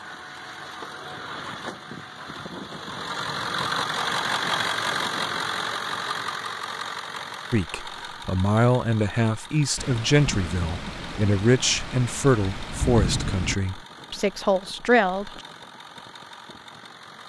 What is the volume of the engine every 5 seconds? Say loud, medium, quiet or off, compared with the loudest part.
loud, loud, quiet, quiet.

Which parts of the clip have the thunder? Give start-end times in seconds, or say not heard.
9.8-13.6.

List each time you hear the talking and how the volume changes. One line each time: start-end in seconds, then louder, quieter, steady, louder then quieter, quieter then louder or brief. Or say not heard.
7.5-15.4 steady.